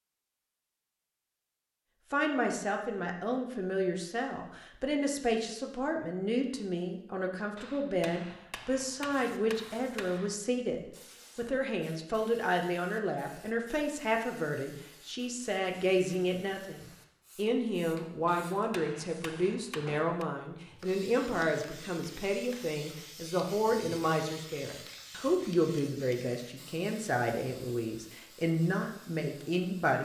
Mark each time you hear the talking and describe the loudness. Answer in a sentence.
The talking can be heard from 2.1 to 29.9 s, at a steady volume.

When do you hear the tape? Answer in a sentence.
The tape can't be heard in this clip.